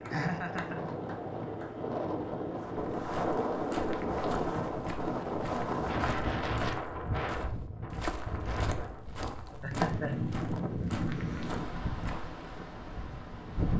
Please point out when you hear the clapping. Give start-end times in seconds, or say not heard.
0.0-1.7.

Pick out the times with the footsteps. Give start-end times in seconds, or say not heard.
2.8-12.3.